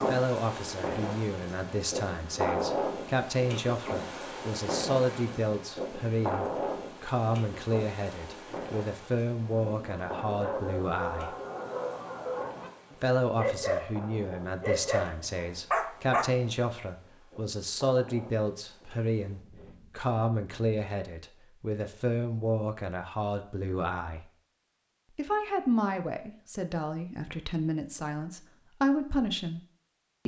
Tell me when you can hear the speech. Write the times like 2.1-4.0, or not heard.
0.1-11.3, 13.0-24.3, 25.1-29.6.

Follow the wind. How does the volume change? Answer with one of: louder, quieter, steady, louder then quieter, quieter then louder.
quieter.